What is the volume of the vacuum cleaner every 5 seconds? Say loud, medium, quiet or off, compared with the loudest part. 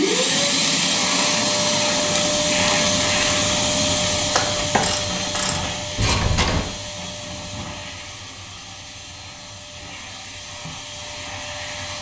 loud, medium, quiet.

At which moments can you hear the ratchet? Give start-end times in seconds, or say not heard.
0.2-6.7.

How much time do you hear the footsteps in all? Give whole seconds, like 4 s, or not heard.
not heard.